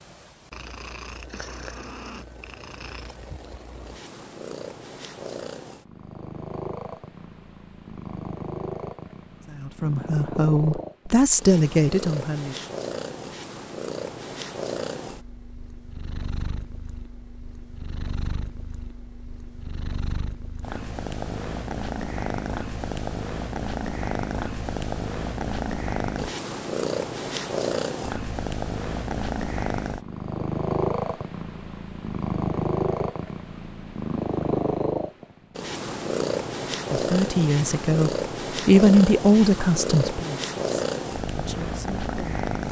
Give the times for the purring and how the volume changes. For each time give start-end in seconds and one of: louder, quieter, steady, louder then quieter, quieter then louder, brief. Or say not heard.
0.0-42.6 louder.